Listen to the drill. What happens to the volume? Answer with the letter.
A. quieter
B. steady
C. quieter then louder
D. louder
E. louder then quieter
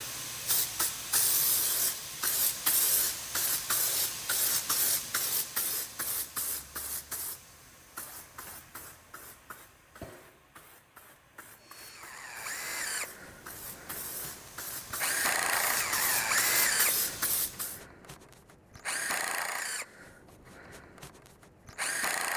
E.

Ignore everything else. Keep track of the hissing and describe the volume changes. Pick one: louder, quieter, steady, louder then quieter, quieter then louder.
quieter then louder.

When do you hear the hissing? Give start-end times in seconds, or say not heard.
0.0-17.8.